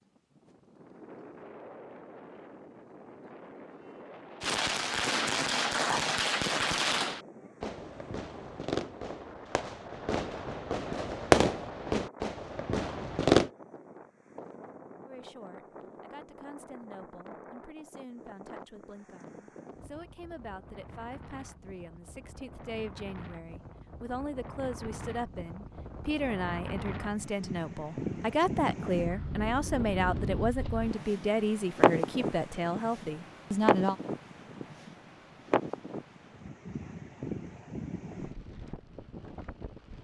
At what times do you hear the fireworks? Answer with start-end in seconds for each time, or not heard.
4.4-13.5.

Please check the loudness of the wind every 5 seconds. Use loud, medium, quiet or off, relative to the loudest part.
quiet, quiet, quiet, quiet, quiet, medium, loud, medium.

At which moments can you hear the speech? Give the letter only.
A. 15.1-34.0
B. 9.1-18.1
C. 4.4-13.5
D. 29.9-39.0
A.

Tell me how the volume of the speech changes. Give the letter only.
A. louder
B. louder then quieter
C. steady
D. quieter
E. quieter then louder
A.